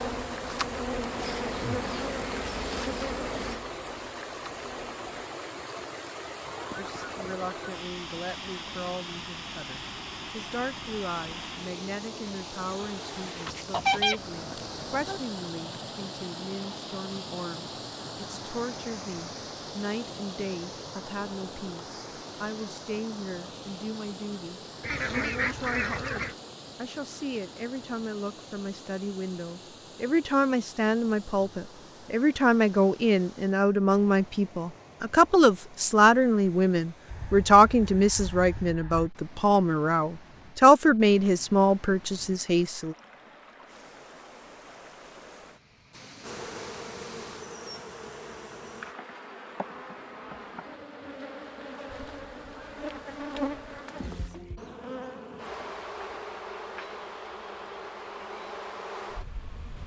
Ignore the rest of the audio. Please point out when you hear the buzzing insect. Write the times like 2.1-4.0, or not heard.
0.0-5.3, 46.2-59.8.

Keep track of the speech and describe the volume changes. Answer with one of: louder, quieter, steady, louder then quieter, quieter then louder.
louder.